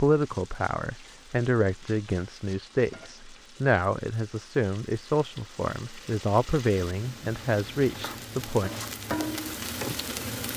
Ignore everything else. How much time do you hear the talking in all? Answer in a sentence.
The talking can be heard for 9 seconds in total.